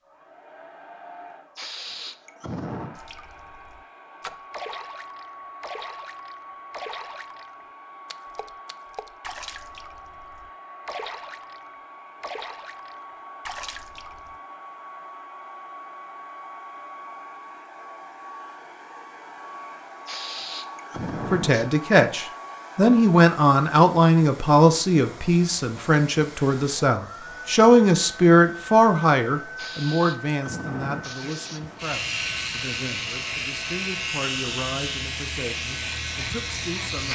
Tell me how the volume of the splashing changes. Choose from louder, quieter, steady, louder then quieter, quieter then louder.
steady.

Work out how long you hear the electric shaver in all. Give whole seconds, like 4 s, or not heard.
6 s.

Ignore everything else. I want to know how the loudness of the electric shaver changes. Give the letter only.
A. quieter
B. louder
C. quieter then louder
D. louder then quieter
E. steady
E.